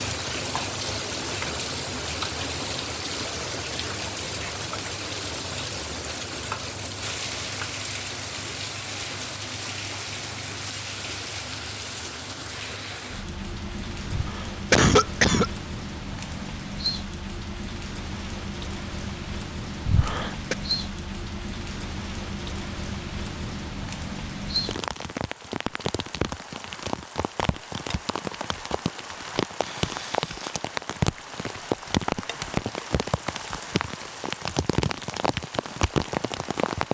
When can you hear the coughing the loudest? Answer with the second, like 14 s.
15 s.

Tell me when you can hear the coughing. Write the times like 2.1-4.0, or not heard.
14.1-15.5, 19.9-20.6.